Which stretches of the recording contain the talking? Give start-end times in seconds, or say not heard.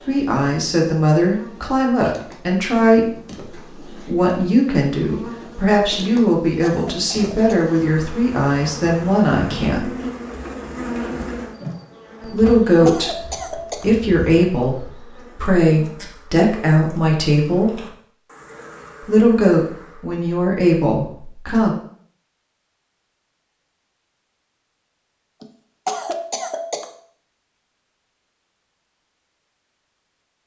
0.1-9.9, 12.2-17.8, 19.0-21.8.